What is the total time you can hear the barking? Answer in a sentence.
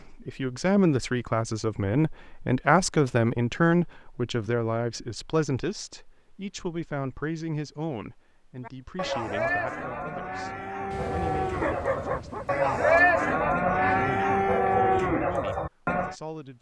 You can hear the barking for 2 seconds altogether.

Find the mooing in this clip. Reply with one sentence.
The mooing can be heard from 8.7 to 16.1 s.